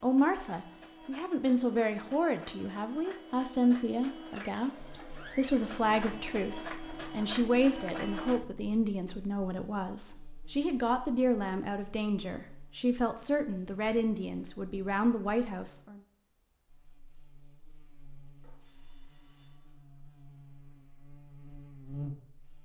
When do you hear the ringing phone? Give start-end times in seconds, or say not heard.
18.4-19.8.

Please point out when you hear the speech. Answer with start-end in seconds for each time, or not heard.
0.0-16.0.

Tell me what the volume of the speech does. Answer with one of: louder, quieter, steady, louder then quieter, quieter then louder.
steady.